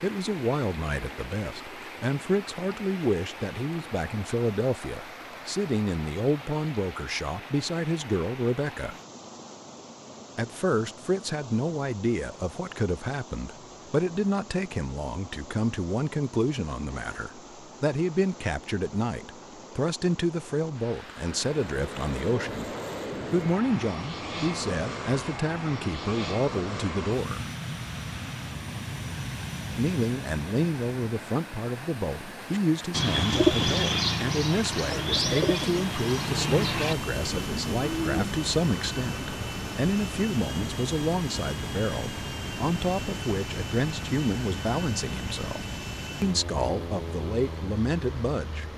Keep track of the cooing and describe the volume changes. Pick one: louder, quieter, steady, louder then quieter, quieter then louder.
quieter.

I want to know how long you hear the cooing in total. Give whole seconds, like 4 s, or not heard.
6 s.